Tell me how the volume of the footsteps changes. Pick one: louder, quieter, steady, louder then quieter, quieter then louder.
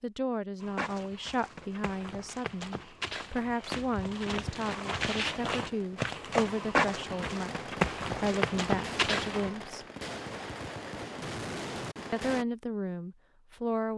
louder.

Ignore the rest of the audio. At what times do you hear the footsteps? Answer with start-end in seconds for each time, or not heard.
0.6-9.5.